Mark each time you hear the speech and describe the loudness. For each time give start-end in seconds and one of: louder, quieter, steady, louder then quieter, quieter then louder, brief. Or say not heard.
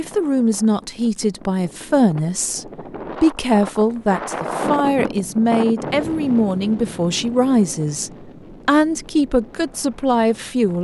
0.0-10.7 steady.